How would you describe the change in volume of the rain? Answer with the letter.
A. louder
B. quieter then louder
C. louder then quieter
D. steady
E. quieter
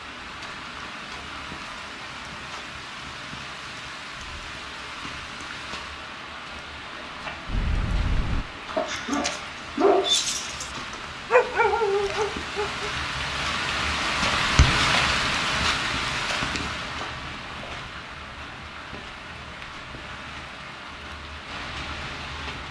C.